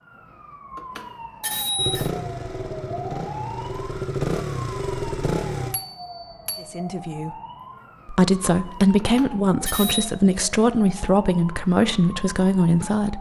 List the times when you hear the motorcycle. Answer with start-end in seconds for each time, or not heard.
1.8-5.8.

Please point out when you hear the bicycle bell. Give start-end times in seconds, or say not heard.
0.8-2.1, 5.7-6.7, 8.9-10.1.